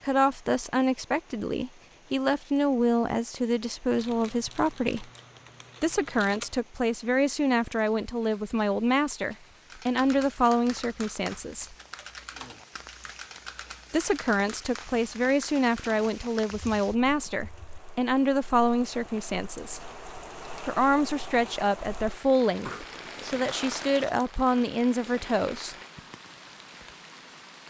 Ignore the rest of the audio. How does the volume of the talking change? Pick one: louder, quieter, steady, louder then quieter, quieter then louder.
steady.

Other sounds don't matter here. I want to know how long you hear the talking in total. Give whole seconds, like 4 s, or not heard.
22 s.